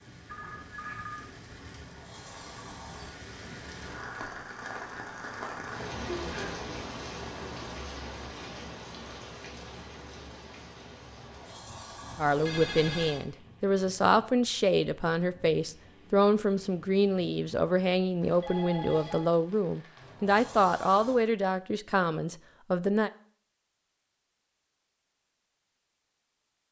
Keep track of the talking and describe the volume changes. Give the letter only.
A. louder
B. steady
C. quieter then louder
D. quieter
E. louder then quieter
B.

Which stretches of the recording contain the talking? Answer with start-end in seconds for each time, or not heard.
12.2-23.1.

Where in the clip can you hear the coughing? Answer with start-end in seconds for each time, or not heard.
not heard.